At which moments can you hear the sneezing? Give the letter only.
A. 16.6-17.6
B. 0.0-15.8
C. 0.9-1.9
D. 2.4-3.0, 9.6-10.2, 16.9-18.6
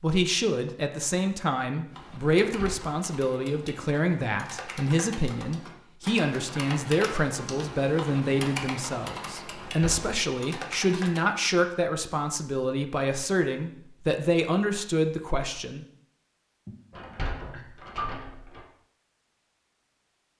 A.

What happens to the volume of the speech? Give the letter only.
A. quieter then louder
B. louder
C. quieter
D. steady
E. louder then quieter
D.